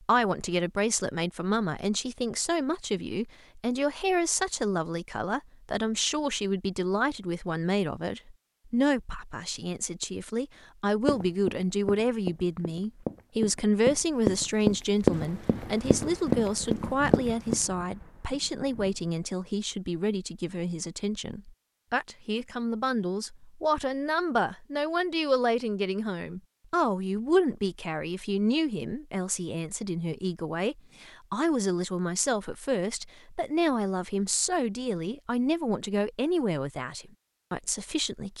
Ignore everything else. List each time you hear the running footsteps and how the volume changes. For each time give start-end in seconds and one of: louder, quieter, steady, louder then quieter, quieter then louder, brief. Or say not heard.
11.1-17.6 louder.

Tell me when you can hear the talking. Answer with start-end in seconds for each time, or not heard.
0.0-38.3.